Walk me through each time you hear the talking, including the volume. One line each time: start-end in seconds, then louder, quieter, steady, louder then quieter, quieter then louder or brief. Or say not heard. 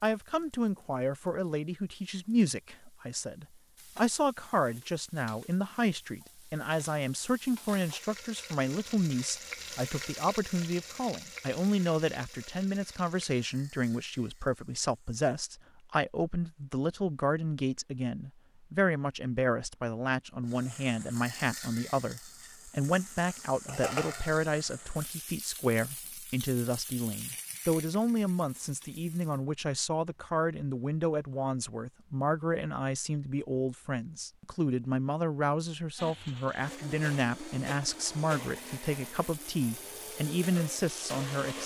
0.0-41.6 steady.